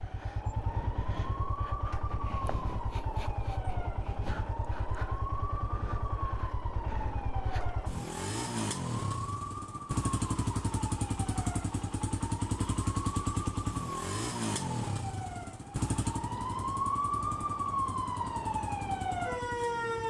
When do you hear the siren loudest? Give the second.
17 s.